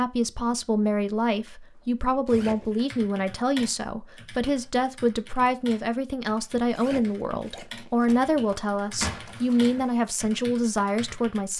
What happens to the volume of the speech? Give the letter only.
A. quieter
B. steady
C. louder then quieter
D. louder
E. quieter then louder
B.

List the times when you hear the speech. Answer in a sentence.
The speech can be heard from 0.0 to 11.5 s.